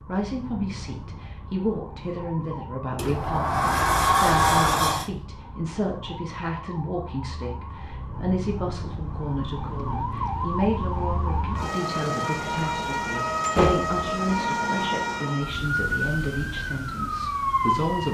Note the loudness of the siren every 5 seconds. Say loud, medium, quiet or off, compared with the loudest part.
quiet, medium, loud, loud.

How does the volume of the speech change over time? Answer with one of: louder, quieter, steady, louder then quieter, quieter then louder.
steady.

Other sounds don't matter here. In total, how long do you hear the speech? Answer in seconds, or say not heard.
18 s.